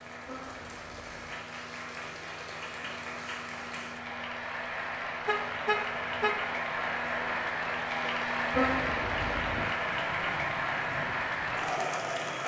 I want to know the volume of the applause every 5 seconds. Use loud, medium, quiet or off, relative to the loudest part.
medium, loud, loud.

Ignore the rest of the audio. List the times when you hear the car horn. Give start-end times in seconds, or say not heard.
0.2-1.4, 5.2-6.4, 8.5-9.7.